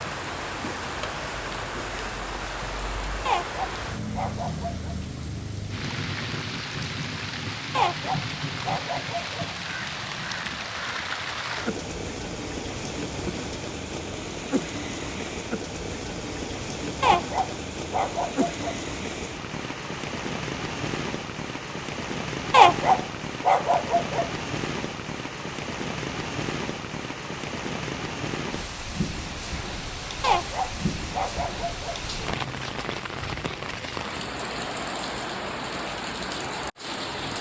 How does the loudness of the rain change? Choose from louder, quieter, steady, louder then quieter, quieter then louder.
steady.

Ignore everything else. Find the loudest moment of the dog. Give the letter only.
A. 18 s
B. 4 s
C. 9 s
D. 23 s
D.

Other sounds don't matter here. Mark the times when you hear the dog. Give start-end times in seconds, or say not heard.
3.2-5.0, 7.8-9.5, 17.0-18.8, 22.5-24.3, 30.2-31.9.